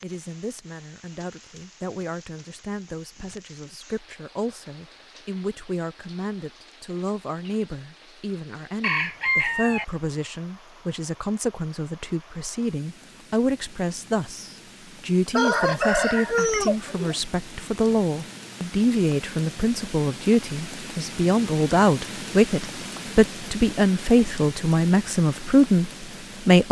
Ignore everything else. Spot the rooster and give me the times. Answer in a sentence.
You can hear the rooster from 8.8 to 9.8 s and from 15.3 to 17.2 s.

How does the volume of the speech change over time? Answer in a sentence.
The volume of the speech goes up.